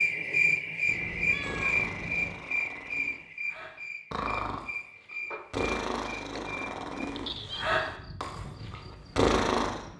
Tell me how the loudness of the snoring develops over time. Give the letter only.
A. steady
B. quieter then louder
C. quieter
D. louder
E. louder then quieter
D.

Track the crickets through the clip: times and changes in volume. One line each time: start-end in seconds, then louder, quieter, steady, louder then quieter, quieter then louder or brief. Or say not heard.
0.0-9.9 quieter.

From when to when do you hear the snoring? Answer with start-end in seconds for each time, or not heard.
1.4-9.8.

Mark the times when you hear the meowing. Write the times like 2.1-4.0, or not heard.
0.8-2.4, 6.0-7.7.